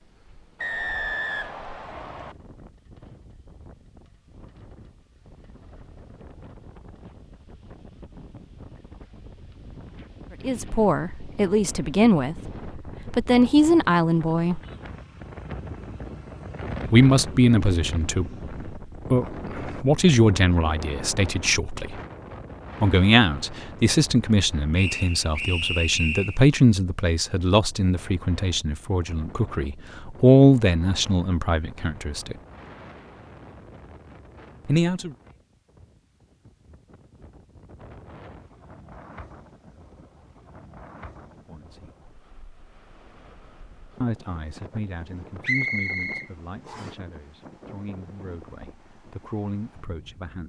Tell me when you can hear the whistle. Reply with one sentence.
The whistle can be heard from 0.6 to 2.4 s, from 24.8 to 26.4 s and from 45.4 to 47.0 s.